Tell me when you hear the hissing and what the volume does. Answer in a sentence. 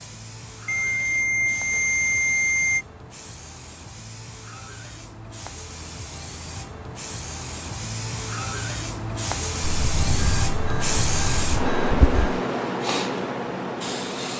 You can hear the hissing from 0.0 to 14.3 s, getting louder.